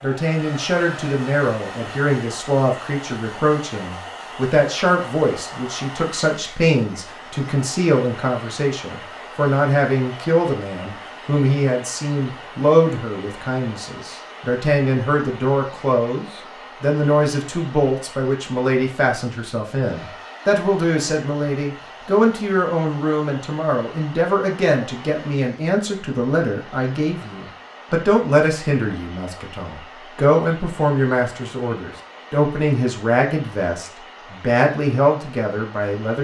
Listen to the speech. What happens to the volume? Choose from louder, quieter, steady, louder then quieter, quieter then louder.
steady.